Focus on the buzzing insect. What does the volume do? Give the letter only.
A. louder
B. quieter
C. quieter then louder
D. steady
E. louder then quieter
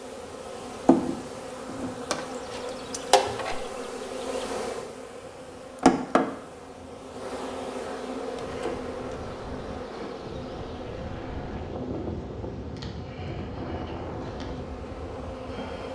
B.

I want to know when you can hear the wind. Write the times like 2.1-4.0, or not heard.
0.0-15.8.